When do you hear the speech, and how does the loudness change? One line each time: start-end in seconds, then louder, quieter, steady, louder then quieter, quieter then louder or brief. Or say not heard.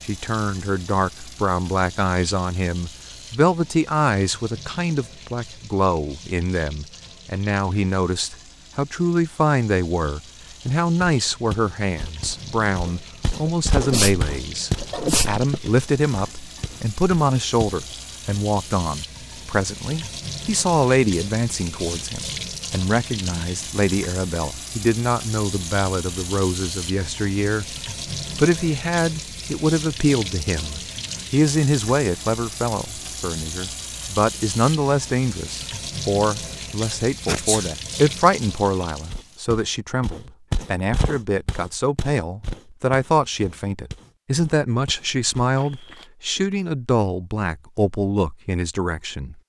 0.1-27.8 steady
28.4-49.4 steady.